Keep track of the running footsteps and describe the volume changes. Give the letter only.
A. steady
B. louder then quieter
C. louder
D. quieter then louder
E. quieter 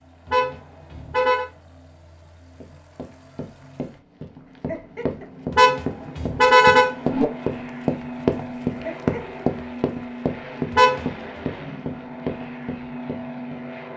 B.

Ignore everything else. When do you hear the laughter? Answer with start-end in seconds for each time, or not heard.
4.5-5.3, 8.8-9.4.